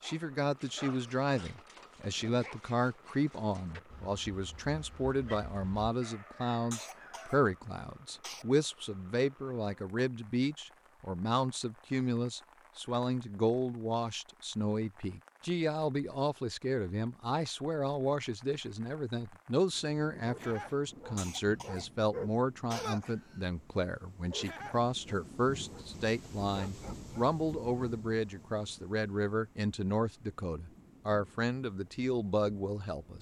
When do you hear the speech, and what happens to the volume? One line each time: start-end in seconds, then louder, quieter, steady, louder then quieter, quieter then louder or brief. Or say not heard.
0.0-33.1 steady.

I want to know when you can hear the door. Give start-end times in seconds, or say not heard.
not heard.